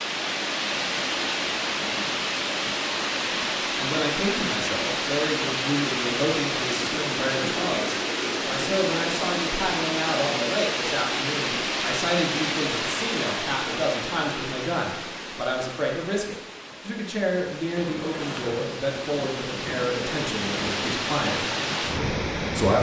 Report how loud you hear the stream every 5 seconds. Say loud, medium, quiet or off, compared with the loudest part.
loud, loud, loud, medium, loud.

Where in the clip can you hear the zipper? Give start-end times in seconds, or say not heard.
17.8-18.7.